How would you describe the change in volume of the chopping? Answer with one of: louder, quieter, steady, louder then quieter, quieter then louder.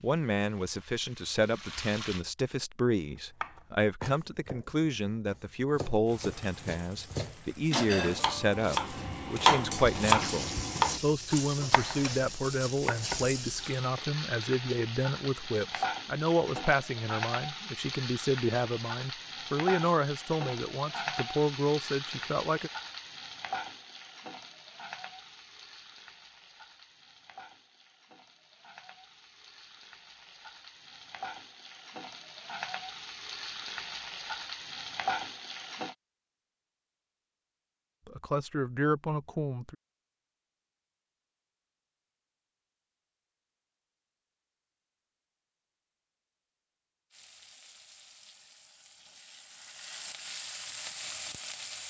louder then quieter.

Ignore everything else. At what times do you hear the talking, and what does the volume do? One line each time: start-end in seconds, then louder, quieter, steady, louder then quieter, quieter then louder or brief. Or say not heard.
0.0-22.7 steady
38.0-39.8 brief.